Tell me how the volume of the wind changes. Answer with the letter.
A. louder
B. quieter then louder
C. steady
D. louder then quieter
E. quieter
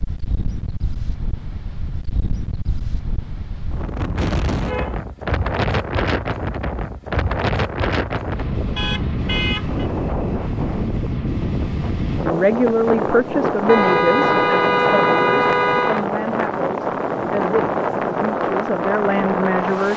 A.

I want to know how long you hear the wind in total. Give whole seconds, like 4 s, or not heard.
20 s.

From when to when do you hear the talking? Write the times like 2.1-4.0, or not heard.
12.2-19.9.